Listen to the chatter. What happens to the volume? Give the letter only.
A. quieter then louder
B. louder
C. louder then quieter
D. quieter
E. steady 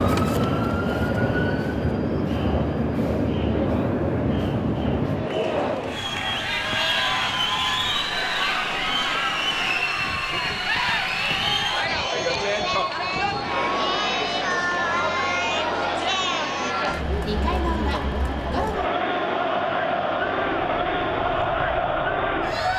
B.